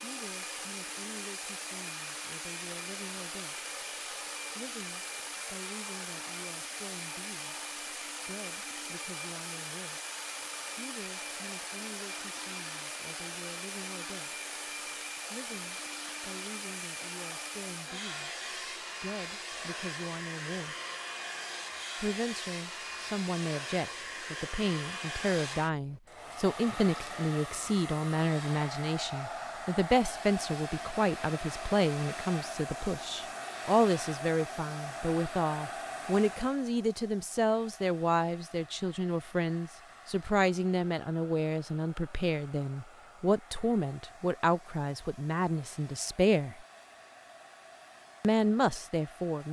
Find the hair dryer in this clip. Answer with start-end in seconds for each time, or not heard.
0.0-49.4.